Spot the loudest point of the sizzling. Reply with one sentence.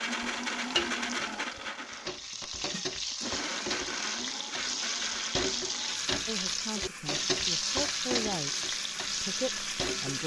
The loudest moment of the sizzling is at 8 seconds.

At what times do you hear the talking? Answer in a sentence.
You can hear the talking from 6.2 to 10.2 s.